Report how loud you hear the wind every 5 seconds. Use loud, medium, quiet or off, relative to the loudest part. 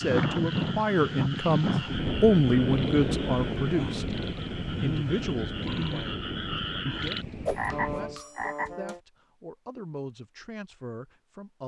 loud, medium, off.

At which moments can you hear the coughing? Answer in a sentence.
The coughing can't be heard in this clip.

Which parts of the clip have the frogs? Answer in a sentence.
You can hear the frogs from 0.0 to 9.0 s.